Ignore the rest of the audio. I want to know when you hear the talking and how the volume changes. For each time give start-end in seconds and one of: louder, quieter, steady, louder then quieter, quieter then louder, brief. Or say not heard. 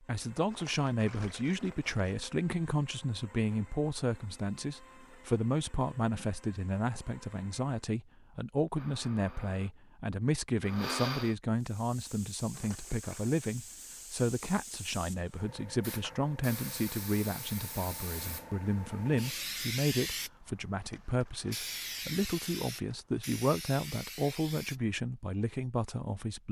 0.0-26.4 steady.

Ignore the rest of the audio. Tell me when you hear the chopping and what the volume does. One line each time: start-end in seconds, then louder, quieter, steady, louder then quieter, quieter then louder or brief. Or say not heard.
not heard.